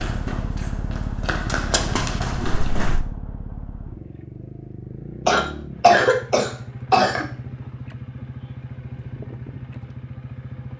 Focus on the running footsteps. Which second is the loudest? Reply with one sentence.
The loudest moment of the running footsteps is at 2 seconds.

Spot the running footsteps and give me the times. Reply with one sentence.
You can hear the running footsteps from 0.0 to 3.0 s.